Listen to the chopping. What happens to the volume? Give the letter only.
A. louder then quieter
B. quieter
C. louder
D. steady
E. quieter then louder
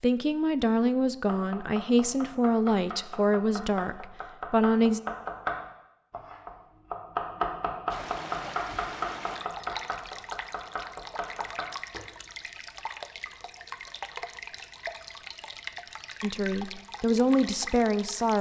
A.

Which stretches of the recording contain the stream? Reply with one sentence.
You can hear the stream from 7.9 to 18.3 s.